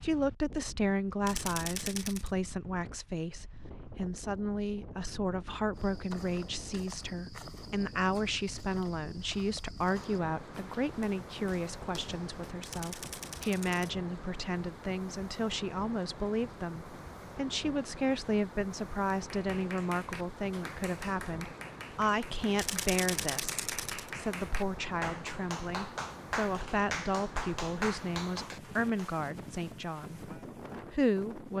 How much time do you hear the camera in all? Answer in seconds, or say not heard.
4 s.